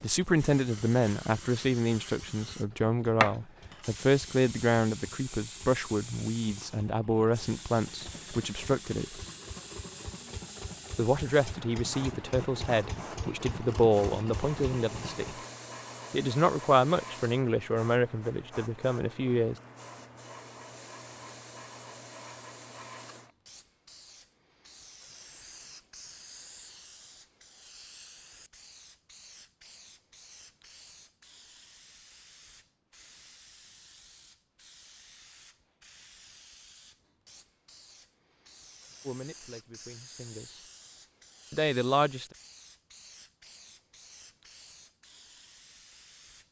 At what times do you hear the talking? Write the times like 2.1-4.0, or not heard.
0.0-9.2, 10.9-15.2, 16.1-19.6, 39.0-40.6, 41.5-42.2.